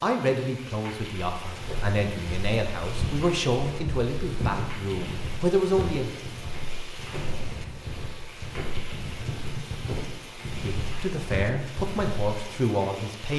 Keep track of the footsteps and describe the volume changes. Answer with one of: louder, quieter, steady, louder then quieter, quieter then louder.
steady.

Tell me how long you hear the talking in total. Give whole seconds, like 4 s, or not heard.
9 s.